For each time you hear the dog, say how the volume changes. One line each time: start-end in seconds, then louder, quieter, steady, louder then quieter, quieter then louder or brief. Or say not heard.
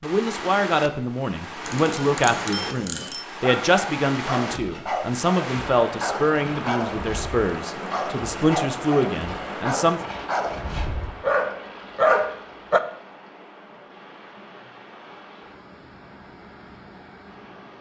3.4-12.8 louder.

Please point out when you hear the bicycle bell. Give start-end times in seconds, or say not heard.
1.6-3.2.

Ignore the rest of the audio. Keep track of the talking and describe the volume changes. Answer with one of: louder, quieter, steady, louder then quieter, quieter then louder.
steady.